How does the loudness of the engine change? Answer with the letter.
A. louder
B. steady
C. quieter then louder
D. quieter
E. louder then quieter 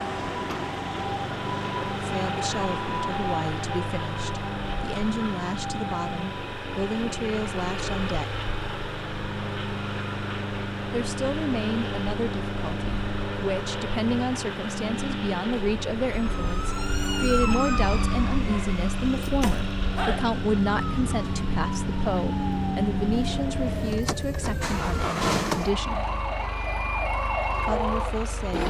B.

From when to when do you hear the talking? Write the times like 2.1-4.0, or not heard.
2.0-8.3, 10.9-26.1, 27.6-28.6.